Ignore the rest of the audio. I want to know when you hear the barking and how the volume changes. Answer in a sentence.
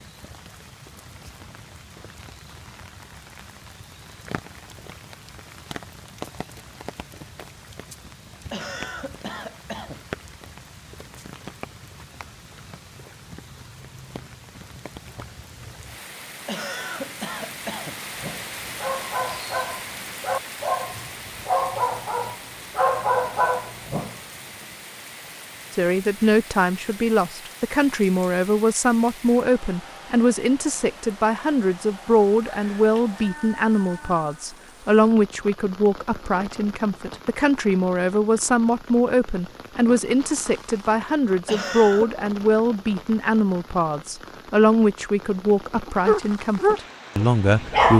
The barking can be heard from 18.1 to 24.1 s, getting louder; and briefly from 45.9 to 47.9 s.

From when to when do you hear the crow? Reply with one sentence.
The crow can't be heard in this clip.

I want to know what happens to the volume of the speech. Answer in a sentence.
The volume of the speech stays about the same.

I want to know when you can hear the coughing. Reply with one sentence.
The coughing can be heard from 8.5 to 10.1 s, from 16.4 to 18.0 s and from 41.5 to 42.1 s.